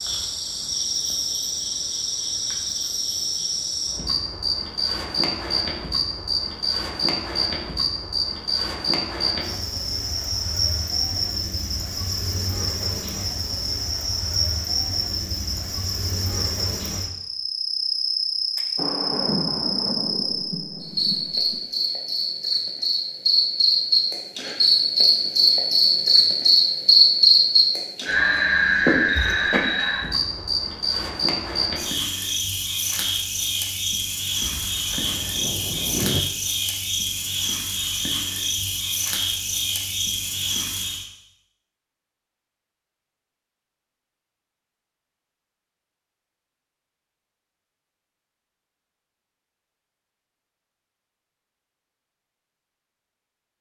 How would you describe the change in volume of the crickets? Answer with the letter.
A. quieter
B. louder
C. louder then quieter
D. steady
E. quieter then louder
C.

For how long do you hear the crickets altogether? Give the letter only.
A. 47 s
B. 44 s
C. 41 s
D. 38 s
C.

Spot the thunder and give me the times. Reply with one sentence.
You can hear the thunder from 18.8 to 21.6 s and from 34.4 to 36.2 s.